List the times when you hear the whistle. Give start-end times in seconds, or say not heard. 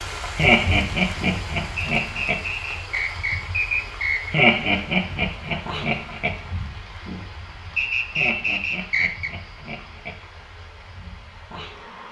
1.8-4.3, 7.8-9.3.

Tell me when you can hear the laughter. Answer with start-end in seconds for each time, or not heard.
0.3-2.4, 4.3-6.3, 8.2-10.2.